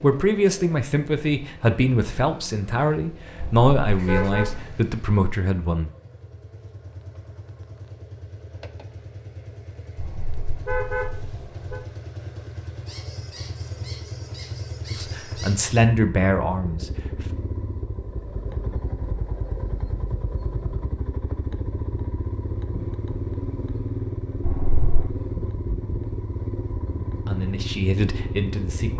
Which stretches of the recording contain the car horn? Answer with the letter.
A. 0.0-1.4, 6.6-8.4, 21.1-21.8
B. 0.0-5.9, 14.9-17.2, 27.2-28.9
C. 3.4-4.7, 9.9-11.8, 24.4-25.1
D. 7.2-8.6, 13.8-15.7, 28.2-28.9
C.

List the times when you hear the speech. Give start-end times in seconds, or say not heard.
0.0-5.9, 14.9-17.2, 27.2-28.9.